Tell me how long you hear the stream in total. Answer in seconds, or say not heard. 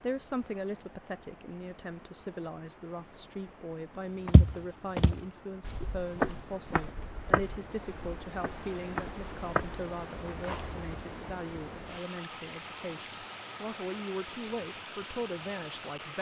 16 s.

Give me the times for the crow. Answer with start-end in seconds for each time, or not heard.
not heard.